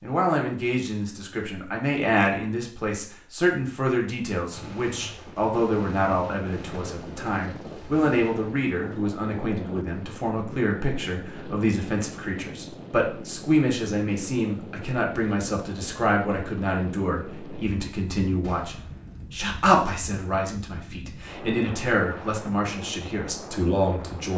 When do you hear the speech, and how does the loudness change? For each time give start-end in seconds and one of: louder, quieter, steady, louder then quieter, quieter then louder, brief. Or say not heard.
0.0-24.3 steady.